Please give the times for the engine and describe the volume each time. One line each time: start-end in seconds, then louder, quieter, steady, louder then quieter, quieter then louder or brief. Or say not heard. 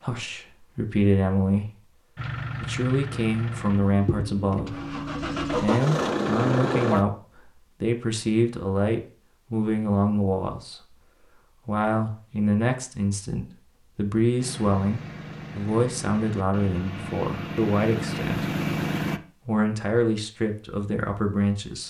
2.1-7.0 louder
14.3-19.2 louder.